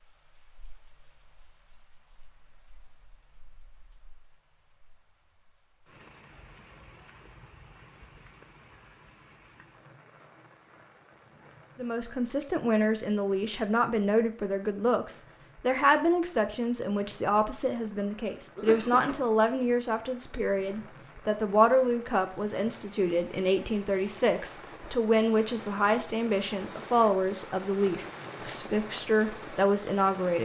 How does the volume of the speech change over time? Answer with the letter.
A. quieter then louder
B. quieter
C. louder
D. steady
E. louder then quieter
D.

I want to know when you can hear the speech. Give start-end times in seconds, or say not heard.
11.8-30.4.